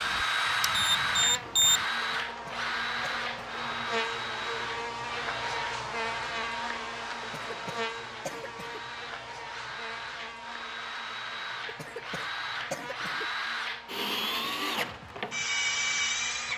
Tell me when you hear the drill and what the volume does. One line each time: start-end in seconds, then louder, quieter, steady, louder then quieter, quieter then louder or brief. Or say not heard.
0.0-16.5 quieter then louder.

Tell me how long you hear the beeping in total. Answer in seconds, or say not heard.
2 s.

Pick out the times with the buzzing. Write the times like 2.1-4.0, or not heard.
0.0-16.5.